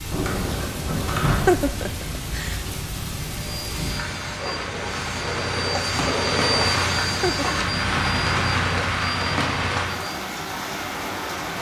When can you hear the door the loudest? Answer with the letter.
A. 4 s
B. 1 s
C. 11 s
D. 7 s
B.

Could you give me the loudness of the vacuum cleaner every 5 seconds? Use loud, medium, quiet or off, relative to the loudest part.
medium, loud, off.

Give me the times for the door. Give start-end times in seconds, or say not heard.
0.1-1.8, 5.8-6.2.